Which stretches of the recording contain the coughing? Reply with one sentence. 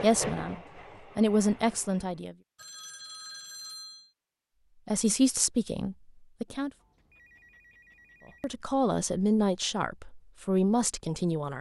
The coughing can't be heard in this clip.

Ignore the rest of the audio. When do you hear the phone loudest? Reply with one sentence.
The loudest moment of the phone is at 4 seconds.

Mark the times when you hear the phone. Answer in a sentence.
You can hear the phone from 2.5 to 4.1 s and from 6.6 to 8.5 s.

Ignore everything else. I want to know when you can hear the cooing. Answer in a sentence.
You can't hear the cooing here.